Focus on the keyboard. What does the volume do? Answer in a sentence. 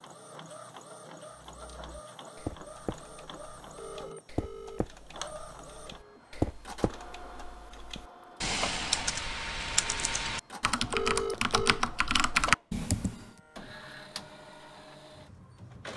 The volume of the keyboard goes up.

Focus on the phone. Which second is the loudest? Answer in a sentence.
The volume of the phone peaks at 11 seconds.